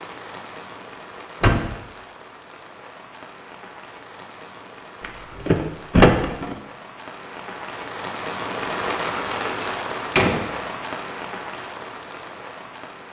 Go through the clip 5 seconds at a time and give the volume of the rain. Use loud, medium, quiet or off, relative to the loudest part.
medium, loud, loud.